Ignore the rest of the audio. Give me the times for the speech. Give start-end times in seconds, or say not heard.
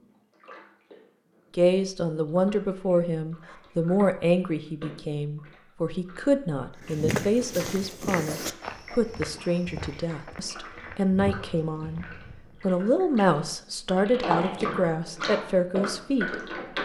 1.6-16.4.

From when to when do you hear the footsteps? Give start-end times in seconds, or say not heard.
6.8-12.6.